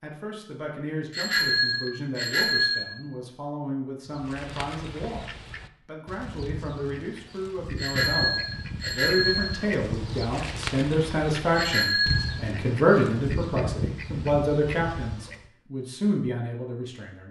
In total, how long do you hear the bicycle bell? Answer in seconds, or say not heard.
4 s.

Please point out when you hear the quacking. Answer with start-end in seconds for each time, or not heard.
4.0-15.4.